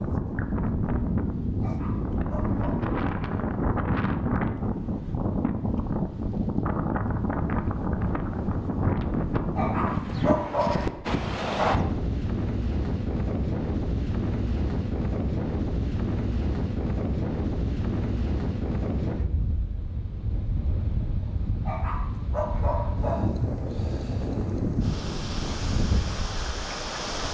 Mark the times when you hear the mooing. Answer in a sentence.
The mooing can't be heard in this clip.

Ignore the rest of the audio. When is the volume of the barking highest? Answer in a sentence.
The loudest moment of the barking is at 10 seconds.